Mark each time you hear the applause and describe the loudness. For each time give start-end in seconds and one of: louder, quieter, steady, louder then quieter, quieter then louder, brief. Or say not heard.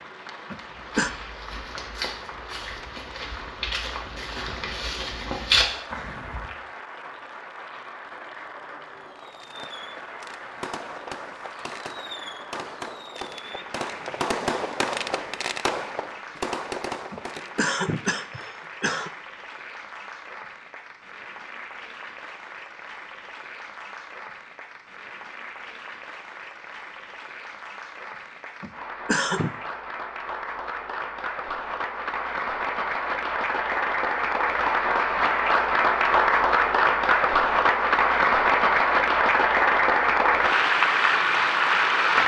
0.0-42.2 louder.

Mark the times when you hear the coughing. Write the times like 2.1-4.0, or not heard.
0.5-1.1, 17.1-19.1, 28.6-29.6.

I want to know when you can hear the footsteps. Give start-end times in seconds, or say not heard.
0.7-6.5.